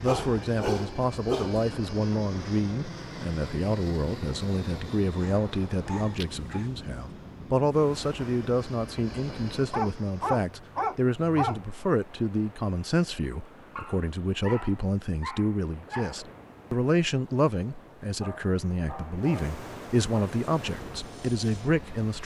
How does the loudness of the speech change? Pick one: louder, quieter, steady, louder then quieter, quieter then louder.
steady.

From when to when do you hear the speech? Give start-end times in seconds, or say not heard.
0.0-22.2.